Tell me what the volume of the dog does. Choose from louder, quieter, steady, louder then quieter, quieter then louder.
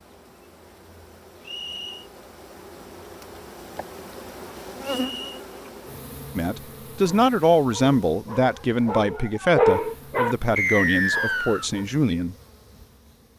louder then quieter.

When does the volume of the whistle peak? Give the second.
11 s.